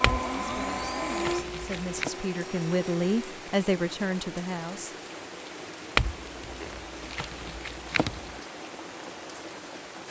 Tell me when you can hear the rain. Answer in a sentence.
The rain can be heard from 0.0 to 10.0 s.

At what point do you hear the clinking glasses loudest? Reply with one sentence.
The volume of the clinking glasses peaks at 6 seconds.